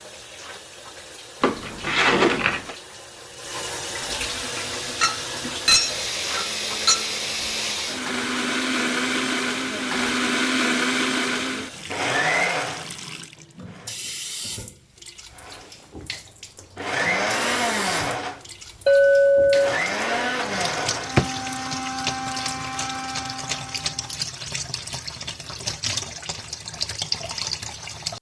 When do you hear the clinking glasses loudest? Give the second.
19 s.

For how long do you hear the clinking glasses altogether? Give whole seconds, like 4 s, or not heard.
3 s.